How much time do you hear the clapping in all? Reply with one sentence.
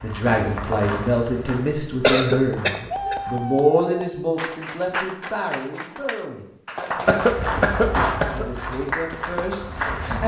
The clapping can be heard for 8 seconds in total.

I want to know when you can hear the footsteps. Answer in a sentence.
You can hear the footsteps from 0.0 to 3.6 s and from 7.2 to 10.2 s.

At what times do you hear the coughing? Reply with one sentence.
The coughing can be heard from 2.0 to 3.1 s and from 7.0 to 8.4 s.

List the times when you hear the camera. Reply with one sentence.
You can't hear the camera here.